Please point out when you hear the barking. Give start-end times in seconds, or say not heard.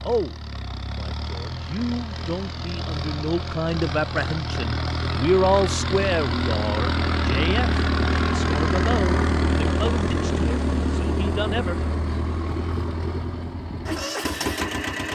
not heard.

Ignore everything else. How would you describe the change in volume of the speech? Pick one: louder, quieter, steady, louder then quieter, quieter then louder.
louder then quieter.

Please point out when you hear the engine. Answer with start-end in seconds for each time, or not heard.
0.0-15.1.